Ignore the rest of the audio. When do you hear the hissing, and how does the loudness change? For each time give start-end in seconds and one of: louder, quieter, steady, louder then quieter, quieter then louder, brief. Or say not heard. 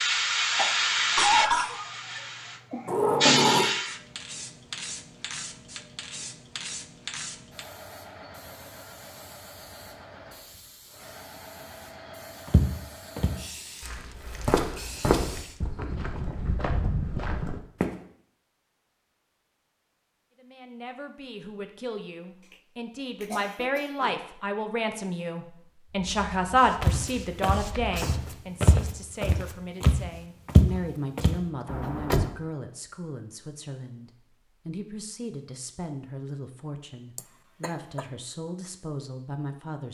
0.0-15.6 quieter
25.9-28.4 brief.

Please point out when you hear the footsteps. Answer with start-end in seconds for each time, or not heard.
12.4-17.9, 26.8-31.4.